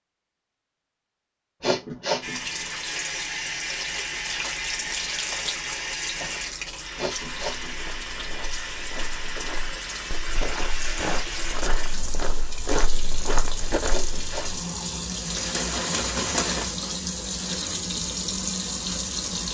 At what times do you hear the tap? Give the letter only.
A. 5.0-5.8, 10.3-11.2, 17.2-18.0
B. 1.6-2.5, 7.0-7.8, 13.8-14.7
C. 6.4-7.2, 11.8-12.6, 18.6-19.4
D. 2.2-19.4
D.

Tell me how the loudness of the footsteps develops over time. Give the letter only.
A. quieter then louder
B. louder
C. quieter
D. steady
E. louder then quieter
B.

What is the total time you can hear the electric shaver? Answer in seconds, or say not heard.
not heard.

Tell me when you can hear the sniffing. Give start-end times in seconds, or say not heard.
1.6-2.5, 7.0-7.8, 13.8-14.7.